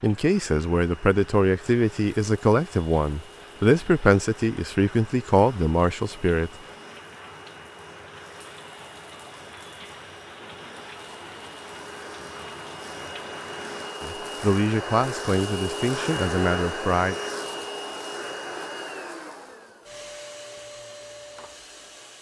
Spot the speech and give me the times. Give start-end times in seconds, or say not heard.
0.0-6.5, 14.0-17.1.